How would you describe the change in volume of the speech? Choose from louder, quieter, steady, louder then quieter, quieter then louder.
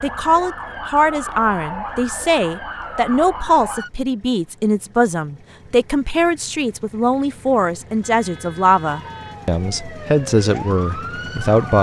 steady.